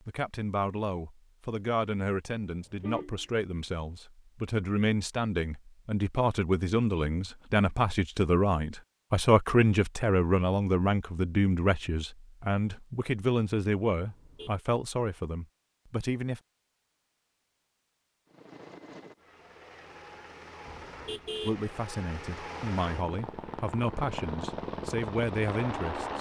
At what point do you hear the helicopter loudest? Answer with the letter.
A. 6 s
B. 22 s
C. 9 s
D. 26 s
D.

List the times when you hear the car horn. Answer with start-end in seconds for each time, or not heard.
2.5-3.4, 13.9-14.6, 20.6-21.6.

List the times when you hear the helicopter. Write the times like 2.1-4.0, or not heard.
18.2-26.1.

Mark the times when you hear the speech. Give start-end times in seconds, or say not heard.
0.1-16.4, 21.4-26.1.